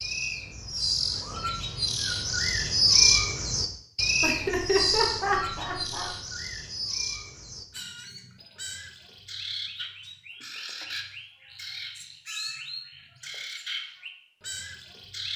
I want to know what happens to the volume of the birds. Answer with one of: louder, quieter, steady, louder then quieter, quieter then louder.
quieter.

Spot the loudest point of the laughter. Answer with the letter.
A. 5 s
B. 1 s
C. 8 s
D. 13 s
A.